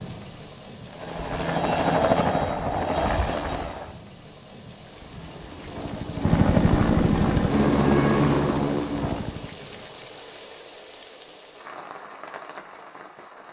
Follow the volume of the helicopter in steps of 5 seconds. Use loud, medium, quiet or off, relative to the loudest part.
loud, loud, off.